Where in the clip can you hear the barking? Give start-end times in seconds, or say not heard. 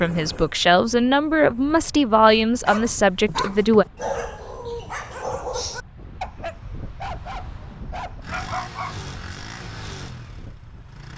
2.3-8.9.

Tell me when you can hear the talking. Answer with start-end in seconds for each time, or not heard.
0.0-3.9.